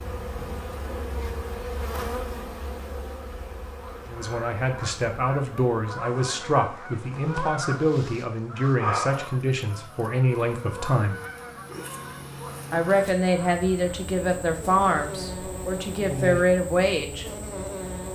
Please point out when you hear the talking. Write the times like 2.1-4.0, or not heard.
4.0-11.2, 12.7-17.2.